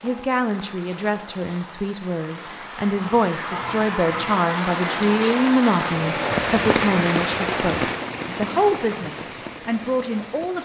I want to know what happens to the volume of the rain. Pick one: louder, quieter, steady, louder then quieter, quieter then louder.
louder then quieter.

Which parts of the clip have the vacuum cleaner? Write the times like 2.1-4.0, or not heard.
0.0-8.0.